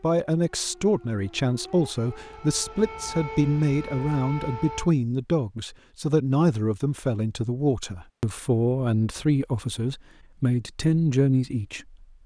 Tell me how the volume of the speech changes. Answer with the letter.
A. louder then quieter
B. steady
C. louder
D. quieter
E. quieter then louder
B.